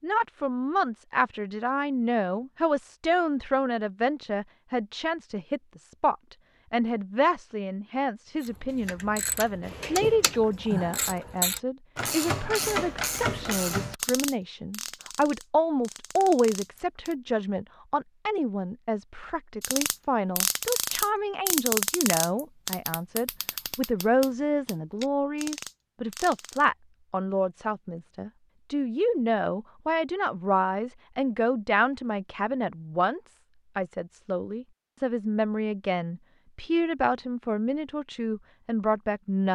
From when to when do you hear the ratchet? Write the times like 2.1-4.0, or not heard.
8.4-17.1, 19.6-26.7.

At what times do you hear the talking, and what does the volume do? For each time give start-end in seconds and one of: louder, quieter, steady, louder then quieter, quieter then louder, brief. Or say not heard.
0.0-39.5 steady.